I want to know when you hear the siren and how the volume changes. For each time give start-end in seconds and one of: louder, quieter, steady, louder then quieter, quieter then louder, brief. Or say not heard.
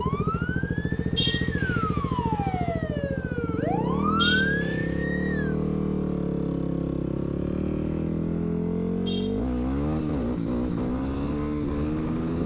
0.0-5.5 louder.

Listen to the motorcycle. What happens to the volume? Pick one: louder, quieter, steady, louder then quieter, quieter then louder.
steady.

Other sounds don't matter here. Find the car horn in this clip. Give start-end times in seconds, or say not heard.
1.1-2.0, 4.2-5.0, 9.1-9.7.